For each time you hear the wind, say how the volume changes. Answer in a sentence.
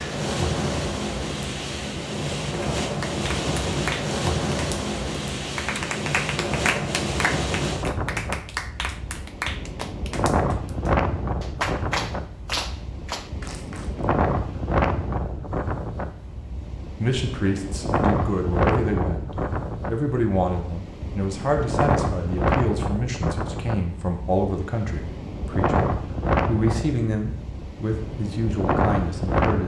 You can hear the wind from 0.0 to 29.6 s, at a steady volume.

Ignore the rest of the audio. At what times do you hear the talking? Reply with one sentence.
You can hear the talking from 17.0 to 19.2 s and from 19.9 to 29.6 s.